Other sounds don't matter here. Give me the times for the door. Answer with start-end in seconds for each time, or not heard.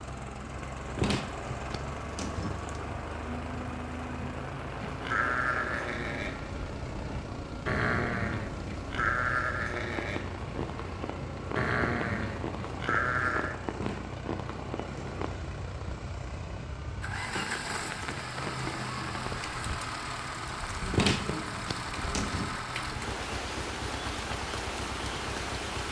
0.9-2.8, 13.8-15.2, 20.9-22.5.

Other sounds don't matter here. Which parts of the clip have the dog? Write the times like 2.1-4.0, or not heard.
not heard.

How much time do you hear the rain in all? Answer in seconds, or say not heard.
26 s.